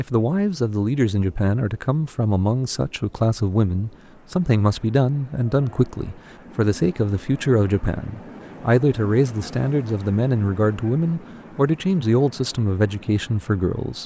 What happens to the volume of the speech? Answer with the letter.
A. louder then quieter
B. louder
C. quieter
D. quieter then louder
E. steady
E.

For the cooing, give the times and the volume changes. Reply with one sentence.
You can't hear the cooing here.